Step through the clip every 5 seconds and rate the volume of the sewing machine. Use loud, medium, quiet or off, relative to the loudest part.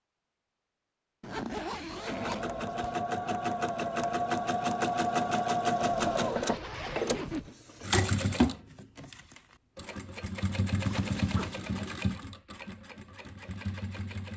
loud, loud, medium.